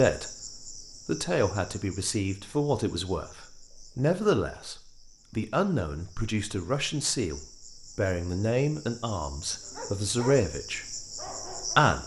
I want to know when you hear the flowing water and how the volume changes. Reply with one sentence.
The flowing water can't be heard in this clip.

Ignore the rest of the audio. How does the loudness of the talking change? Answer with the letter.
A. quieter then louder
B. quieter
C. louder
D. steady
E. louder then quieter
D.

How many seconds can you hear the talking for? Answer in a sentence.
You can hear the talking for 12 seconds altogether.